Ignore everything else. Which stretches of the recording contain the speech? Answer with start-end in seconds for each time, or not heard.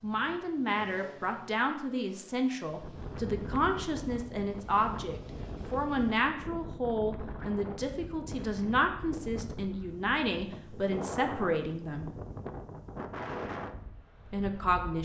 0.0-12.1, 14.3-14.9.